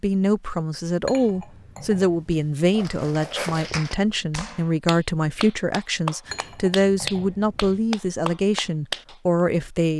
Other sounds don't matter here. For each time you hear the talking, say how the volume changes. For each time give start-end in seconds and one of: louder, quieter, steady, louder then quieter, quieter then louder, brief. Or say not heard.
0.0-9.9 steady.